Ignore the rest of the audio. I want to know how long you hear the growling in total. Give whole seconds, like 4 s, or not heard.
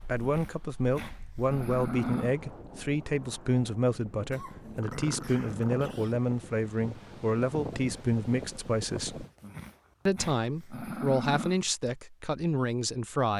6 s.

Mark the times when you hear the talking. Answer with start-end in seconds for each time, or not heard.
0.0-9.2, 10.1-13.3.